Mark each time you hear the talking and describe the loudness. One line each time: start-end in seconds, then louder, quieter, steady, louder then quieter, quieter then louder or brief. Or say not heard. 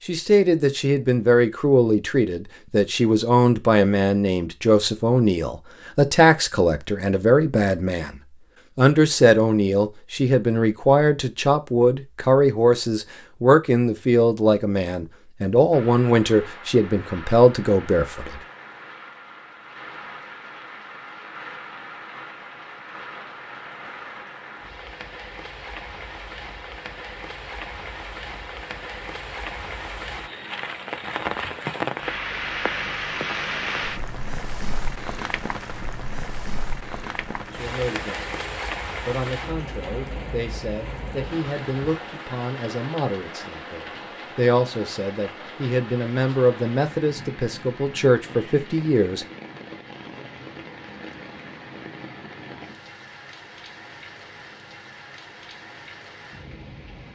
0.1-18.4 steady
37.5-49.2 louder.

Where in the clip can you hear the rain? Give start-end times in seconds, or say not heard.
15.7-57.1.